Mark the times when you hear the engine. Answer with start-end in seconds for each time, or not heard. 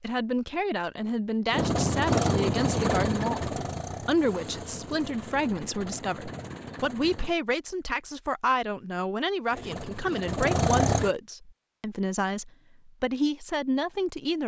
1.5-7.3, 9.5-11.2.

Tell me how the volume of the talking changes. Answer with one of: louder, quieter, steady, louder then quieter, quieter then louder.
steady.